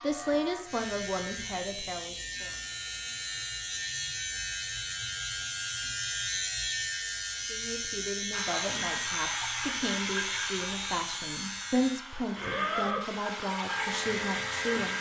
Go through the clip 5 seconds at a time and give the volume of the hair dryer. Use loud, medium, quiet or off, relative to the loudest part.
off, loud, loud.